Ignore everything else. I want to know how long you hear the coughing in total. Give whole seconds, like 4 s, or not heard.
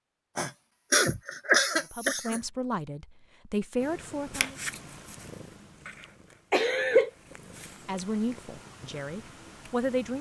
3 s.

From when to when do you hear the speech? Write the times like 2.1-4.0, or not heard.
1.9-4.5, 7.8-10.1.